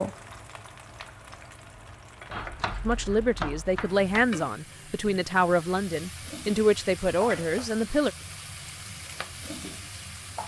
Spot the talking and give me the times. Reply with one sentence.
The talking can be heard from 2.9 to 8.1 s.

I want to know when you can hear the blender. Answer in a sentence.
You can't hear the blender here.